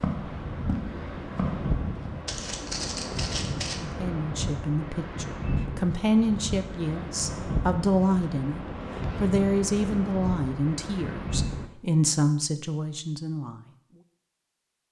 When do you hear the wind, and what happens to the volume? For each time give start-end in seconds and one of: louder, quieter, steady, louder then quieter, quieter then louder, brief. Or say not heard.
0.0-11.7 steady.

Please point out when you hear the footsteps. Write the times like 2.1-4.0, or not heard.
0.0-3.8.